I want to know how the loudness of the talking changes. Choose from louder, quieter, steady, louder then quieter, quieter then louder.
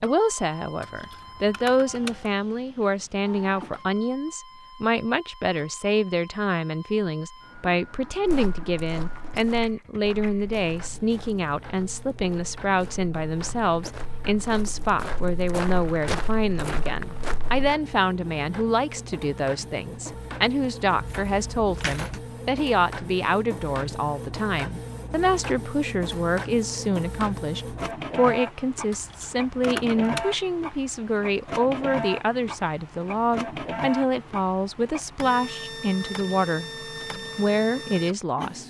steady.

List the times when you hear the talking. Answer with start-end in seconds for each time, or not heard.
0.0-38.6.